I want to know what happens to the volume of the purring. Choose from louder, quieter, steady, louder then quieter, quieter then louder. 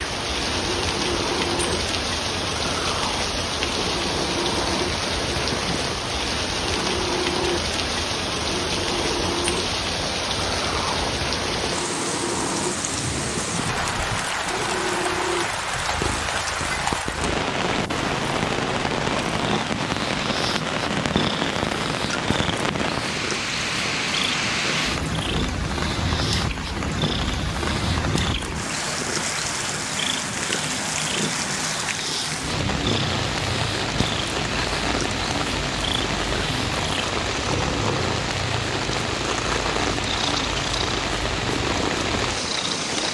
steady.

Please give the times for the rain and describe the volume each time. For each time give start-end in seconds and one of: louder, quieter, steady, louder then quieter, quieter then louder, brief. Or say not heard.
0.0-43.0 steady.